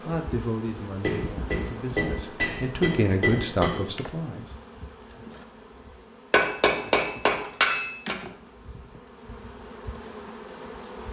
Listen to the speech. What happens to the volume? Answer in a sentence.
The volume of the speech goes down, then up.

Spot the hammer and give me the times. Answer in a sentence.
The hammer can be heard from 1.0 to 3.9 s and from 6.3 to 8.2 s.